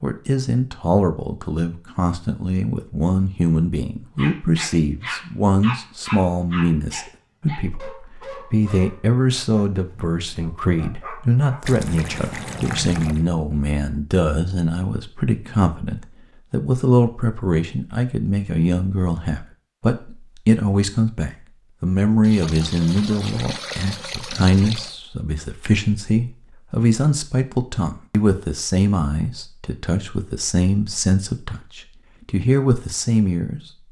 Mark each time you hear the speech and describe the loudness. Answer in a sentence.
The speech can be heard from 0.0 to 33.6 s, at a steady volume.